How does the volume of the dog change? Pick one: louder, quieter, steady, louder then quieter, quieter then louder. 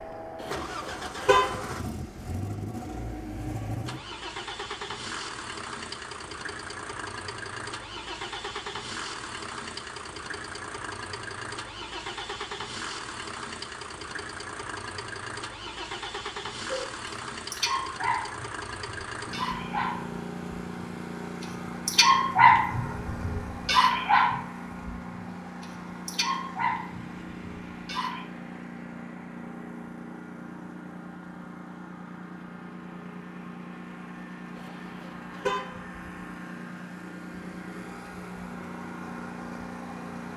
louder then quieter.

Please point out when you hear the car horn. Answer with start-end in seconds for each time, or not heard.
0.4-1.6, 34.5-35.8.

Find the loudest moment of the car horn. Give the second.
1 s.